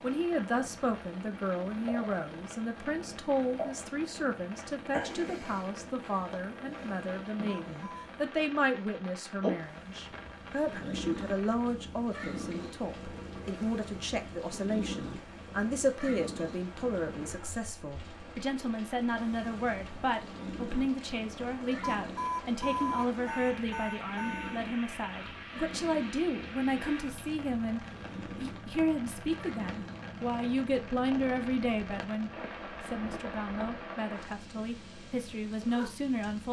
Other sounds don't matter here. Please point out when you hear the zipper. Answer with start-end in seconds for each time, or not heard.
not heard.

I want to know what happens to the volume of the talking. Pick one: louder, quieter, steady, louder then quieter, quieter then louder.
steady.